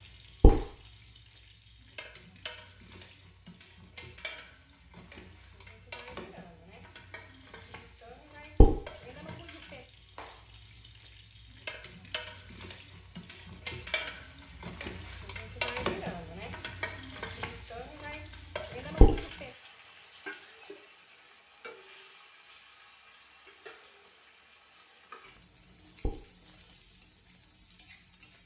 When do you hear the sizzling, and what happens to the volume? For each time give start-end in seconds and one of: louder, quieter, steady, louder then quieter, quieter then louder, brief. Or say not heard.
0.0-28.4 louder then quieter.